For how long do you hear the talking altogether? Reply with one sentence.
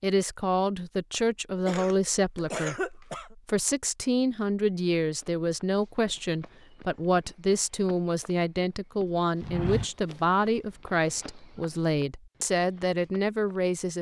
The talking can be heard for 14 seconds in total.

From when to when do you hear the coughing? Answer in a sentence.
You can hear the coughing from 1.6 to 3.4 s.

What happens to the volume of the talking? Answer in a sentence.
The volume of the talking stays about the same.